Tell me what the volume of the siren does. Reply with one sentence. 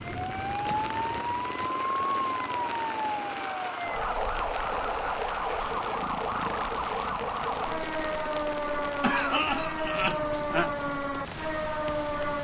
The volume of the siren stays about the same.